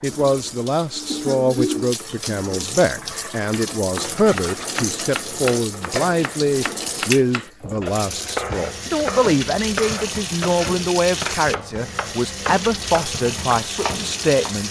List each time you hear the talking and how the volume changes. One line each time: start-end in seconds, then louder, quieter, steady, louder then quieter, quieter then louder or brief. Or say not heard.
0.0-14.6 steady.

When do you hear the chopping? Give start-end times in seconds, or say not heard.
3.5-14.6.